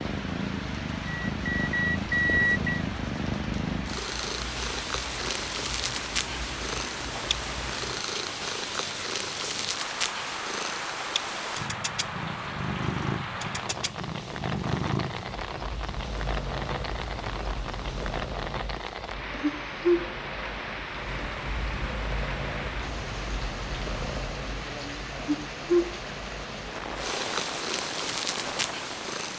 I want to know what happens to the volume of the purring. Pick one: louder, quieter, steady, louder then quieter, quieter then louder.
steady.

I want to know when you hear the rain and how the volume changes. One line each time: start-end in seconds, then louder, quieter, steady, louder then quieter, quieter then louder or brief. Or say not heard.
0.0-29.3 steady.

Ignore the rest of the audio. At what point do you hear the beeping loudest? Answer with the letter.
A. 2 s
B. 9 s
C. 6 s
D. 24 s
A.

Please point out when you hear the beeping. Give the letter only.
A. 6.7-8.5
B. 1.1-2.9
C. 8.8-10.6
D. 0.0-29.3
B.